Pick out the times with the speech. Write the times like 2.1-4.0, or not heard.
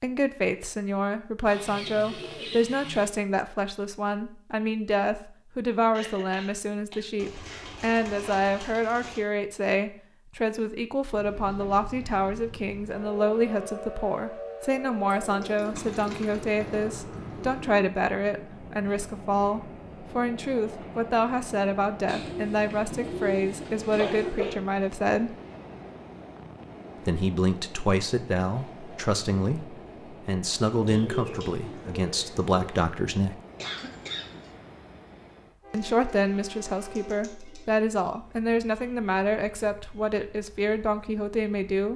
0.0-25.4, 27.0-33.4, 35.7-41.9.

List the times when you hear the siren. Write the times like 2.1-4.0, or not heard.
not heard.